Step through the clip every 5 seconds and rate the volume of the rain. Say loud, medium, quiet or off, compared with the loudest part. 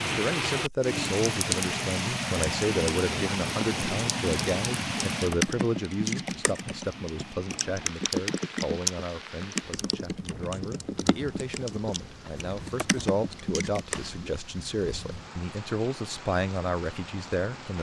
loud, medium, quiet, quiet.